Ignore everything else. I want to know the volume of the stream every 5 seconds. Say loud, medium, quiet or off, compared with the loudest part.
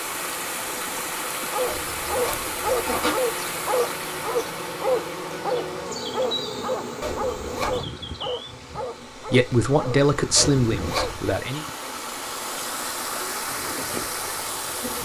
loud, medium, loud.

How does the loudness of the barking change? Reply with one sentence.
The volume of the barking goes down.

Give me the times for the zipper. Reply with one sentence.
You can hear the zipper from 1.6 to 3.1 s, from 7.0 to 7.8 s and from 10.3 to 11.3 s.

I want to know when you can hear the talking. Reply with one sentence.
The talking can be heard from 9.3 to 11.7 s.